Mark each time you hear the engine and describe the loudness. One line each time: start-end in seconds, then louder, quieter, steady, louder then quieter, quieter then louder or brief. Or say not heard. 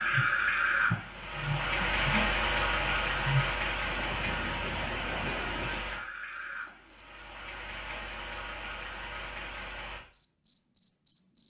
0.0-10.0 quieter.